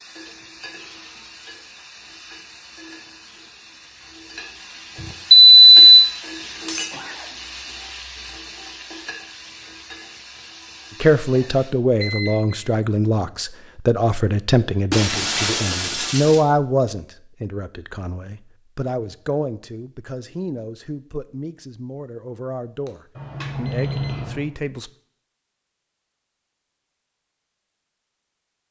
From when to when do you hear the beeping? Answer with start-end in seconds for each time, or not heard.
5.0-5.8, 12.0-12.6, 23.1-24.4.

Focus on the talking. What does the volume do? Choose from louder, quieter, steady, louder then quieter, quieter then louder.
quieter.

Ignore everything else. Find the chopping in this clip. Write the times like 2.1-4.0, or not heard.
not heard.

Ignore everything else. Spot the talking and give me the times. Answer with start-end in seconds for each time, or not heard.
11.0-24.9.